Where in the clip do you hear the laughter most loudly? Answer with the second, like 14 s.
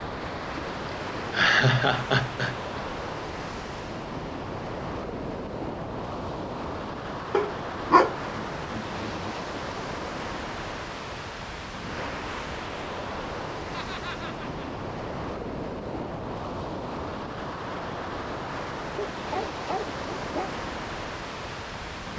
2 s.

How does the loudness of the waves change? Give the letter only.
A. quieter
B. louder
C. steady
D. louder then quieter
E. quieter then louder
C.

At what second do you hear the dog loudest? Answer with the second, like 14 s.
8 s.